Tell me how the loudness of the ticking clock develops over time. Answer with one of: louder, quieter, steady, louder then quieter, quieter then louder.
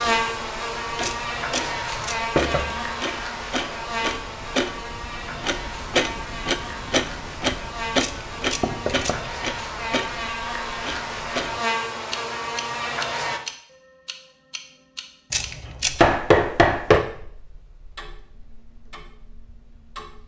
louder then quieter.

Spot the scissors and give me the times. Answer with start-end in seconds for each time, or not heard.
1.0-2.2, 8.0-9.3, 15.3-16.0.